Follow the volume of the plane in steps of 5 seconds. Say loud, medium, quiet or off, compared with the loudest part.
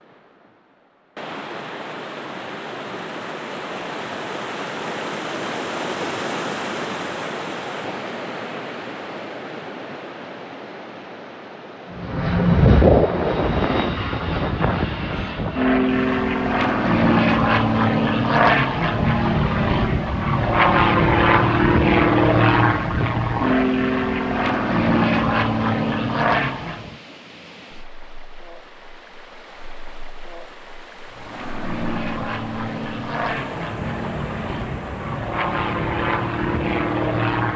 off, off, loud, loud, loud, loud, medium, medium.